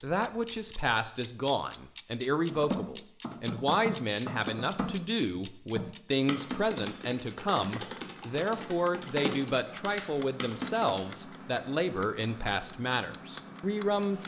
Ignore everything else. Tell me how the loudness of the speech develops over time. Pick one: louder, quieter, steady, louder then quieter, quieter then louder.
steady.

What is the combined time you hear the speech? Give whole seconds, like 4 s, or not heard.
14 s.